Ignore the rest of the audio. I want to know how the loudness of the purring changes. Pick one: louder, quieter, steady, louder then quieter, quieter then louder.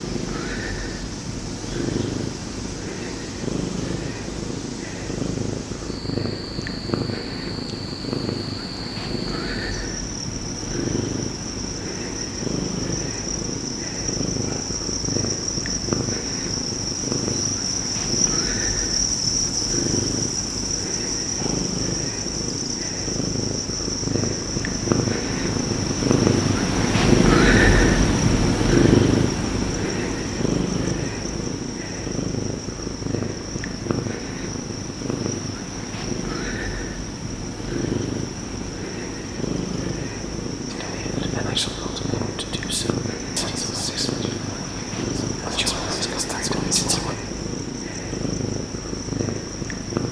louder then quieter.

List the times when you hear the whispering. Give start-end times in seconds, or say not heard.
40.7-47.1.